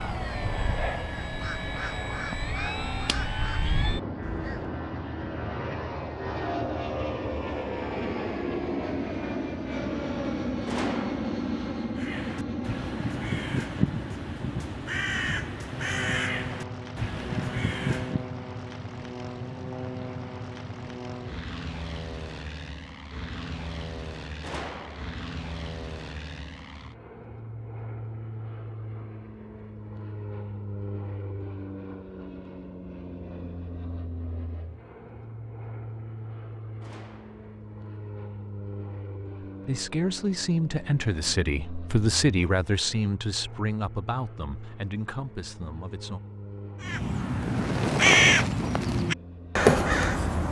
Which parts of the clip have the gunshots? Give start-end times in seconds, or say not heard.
10.7-11.3, 24.4-25.2, 36.8-37.5.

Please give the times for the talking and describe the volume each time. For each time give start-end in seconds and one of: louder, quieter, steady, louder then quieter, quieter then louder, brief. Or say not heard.
39.6-46.2 quieter.